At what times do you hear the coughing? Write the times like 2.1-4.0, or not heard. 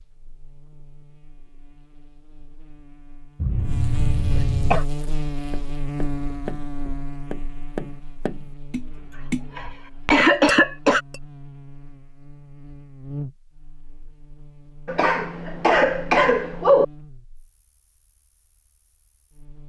3.4-4.8, 8.9-11.0, 14.8-16.9.